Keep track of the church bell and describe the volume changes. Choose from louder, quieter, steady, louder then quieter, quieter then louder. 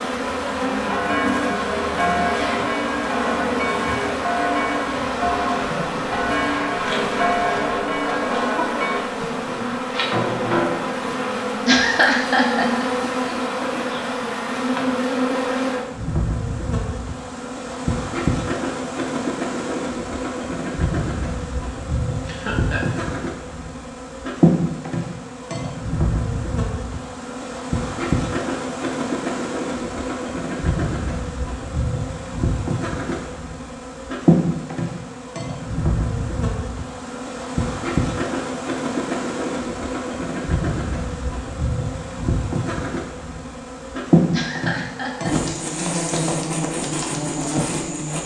steady.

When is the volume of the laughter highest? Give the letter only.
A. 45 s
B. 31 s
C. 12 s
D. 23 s
C.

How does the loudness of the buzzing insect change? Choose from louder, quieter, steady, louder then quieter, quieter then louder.
steady.